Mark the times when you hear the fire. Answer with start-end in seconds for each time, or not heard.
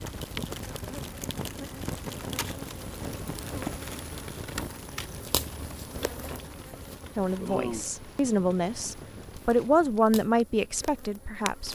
0.0-11.6.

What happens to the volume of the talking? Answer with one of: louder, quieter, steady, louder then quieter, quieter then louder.
louder then quieter.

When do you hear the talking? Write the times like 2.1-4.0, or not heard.
7.2-11.6.